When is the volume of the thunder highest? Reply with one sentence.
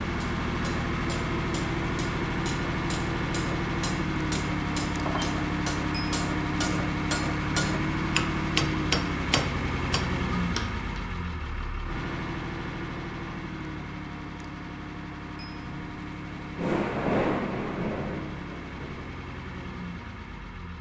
The loudest moment of the thunder is at 17 seconds.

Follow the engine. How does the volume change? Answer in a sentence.
The loudness of the engine goes down.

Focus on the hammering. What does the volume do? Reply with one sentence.
The loudness of the hammering goes up.